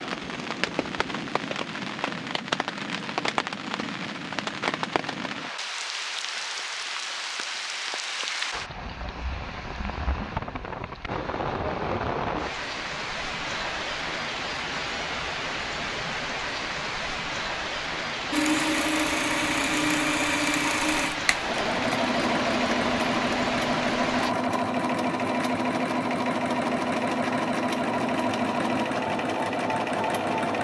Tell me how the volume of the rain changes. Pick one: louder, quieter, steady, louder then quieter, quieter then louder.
steady.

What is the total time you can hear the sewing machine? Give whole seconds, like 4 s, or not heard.
12 s.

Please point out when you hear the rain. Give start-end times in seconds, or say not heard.
0.0-24.4.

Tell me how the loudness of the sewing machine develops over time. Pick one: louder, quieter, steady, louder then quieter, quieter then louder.
steady.